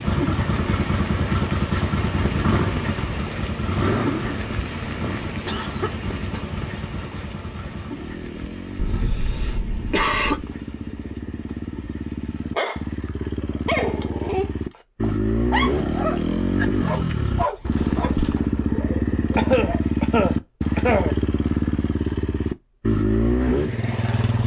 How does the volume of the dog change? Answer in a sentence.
The volume of the dog goes down.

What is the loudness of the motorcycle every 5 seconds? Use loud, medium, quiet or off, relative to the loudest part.
loud, medium, medium, loud, loud.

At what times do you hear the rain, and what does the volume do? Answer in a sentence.
You can hear the rain from 0.0 to 12.7 s, getting quieter.